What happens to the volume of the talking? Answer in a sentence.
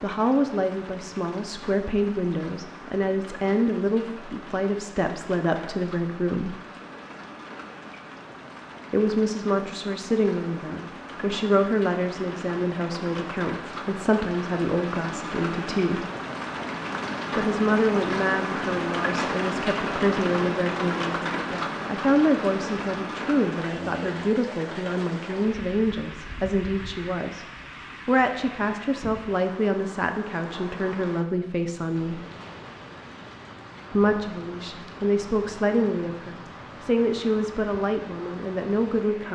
The loudness of the talking stays about the same.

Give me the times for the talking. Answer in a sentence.
You can hear the talking from 0.0 to 6.5 s, from 8.9 to 16.1 s, from 17.4 to 27.4 s, from 28.1 to 32.2 s and from 33.9 to 39.2 s.